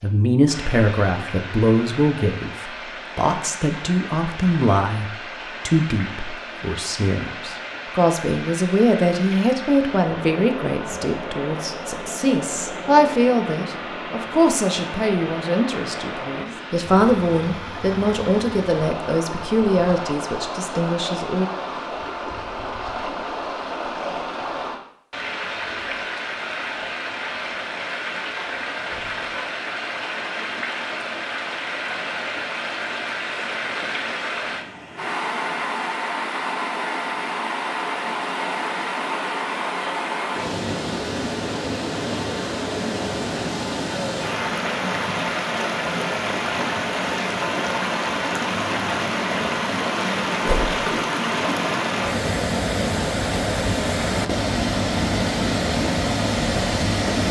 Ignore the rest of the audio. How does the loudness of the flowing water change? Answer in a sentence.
The loudness of the flowing water goes up.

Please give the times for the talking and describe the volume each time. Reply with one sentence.
The talking can be heard from 0.0 to 21.5 s, at a steady volume.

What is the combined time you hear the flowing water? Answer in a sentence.
You can hear the flowing water for 57 seconds altogether.